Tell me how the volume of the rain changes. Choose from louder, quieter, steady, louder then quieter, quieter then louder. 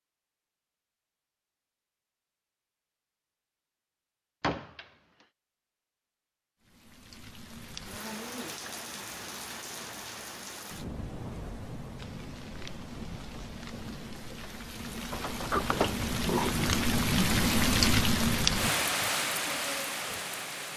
louder.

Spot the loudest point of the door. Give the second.
16 s.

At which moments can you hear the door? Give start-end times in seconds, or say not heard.
4.4-4.8, 15.1-16.8.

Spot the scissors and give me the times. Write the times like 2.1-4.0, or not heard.
not heard.